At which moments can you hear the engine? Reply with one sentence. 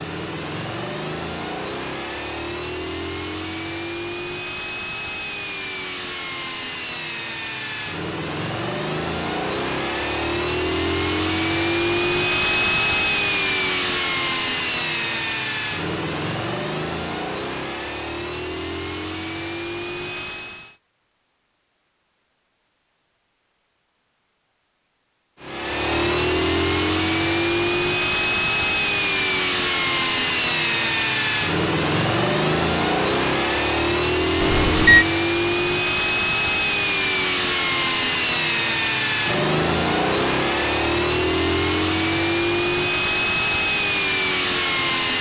You can hear the engine from 0.0 to 20.8 s and from 25.4 to 45.1 s.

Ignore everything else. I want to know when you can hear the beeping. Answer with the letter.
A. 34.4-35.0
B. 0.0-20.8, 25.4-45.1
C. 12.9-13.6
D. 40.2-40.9
A.